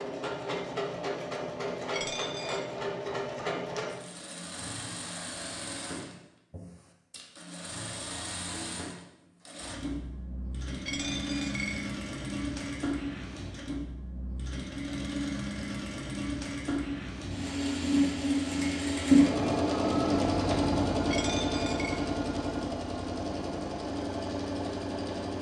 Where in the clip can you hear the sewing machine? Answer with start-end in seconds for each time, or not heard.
0.0-25.3.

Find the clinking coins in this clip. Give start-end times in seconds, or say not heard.
1.9-2.6, 10.8-11.9, 21.1-22.0.